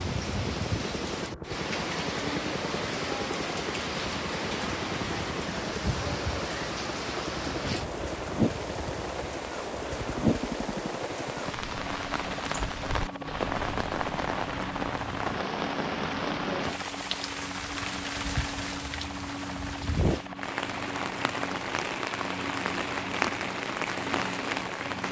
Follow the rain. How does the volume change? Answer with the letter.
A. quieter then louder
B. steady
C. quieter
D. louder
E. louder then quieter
B.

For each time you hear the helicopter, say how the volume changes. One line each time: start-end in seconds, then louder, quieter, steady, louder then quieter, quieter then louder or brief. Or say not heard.
0.1-25.0 steady.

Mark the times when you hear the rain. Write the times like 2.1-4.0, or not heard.
0.0-25.0.